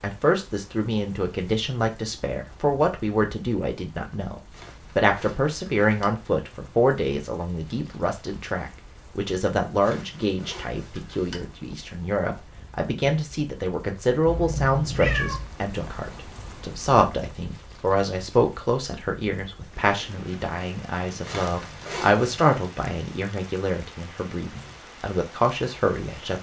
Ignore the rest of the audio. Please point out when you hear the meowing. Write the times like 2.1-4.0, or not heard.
14.2-15.5.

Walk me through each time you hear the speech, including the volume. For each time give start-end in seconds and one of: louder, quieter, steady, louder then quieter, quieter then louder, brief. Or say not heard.
0.0-26.3 steady.